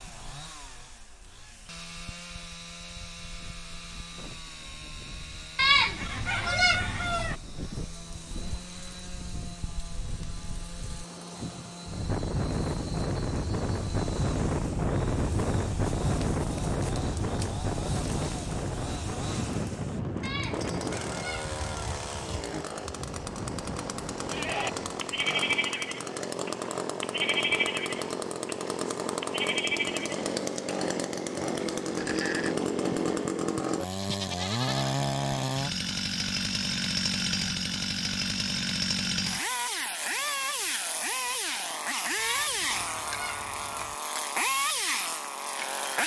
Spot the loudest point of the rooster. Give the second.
6 s.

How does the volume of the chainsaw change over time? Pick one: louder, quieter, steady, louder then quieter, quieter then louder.
louder.